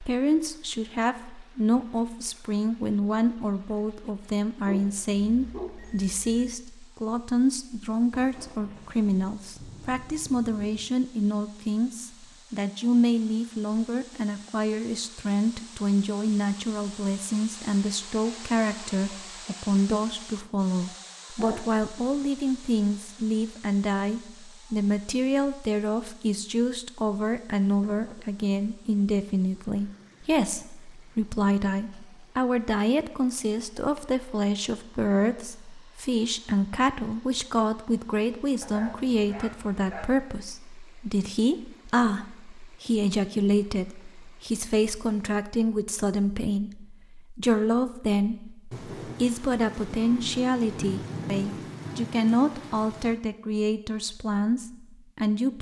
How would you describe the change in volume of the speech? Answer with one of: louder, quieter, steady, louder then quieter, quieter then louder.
steady.